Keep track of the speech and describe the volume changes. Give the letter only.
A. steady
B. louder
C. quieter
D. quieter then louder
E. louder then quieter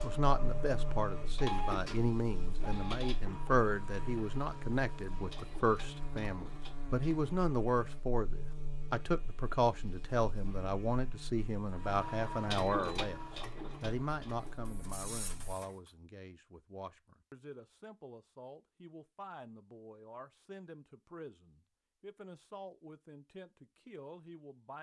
C.